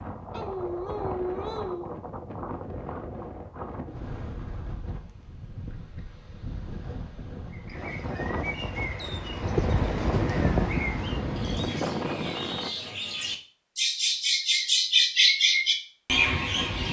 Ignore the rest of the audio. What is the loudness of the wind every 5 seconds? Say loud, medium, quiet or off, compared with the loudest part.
medium, medium, loud, off.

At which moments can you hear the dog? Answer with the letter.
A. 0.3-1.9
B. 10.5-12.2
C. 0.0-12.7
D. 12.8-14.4
A.